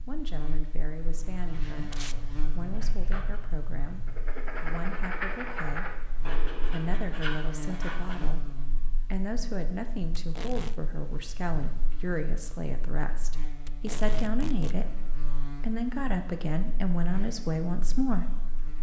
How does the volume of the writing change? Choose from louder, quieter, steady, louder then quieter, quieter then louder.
louder.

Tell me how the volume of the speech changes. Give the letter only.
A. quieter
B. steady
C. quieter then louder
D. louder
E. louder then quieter
D.